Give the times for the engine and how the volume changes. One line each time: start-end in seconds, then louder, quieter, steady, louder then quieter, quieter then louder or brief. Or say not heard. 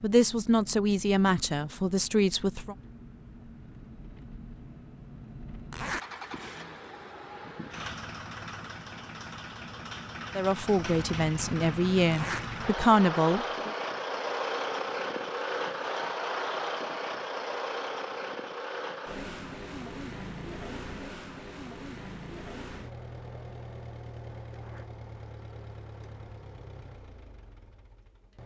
0.0-28.4 louder then quieter.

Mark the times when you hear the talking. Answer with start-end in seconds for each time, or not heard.
0.0-2.8, 10.3-13.7.